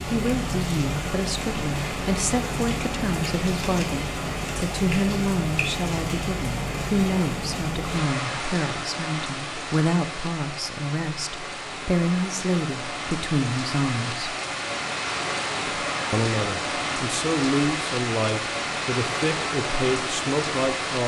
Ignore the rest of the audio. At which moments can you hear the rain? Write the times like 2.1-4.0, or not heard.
0.0-21.0.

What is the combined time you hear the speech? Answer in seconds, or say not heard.
19 s.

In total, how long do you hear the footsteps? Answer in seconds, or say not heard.
not heard.